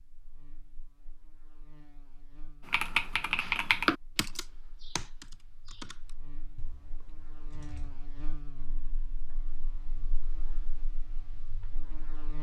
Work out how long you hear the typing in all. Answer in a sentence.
The typing can be heard for 6 seconds in total.